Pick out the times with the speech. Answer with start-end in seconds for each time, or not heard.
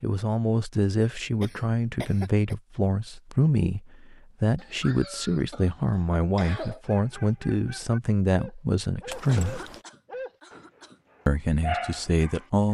0.0-9.7, 11.2-12.6.